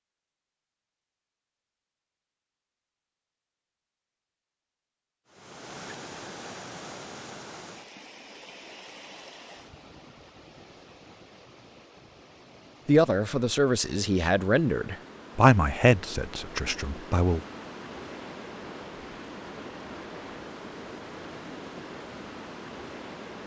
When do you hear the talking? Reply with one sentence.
You can hear the talking from 12.8 to 17.4 s.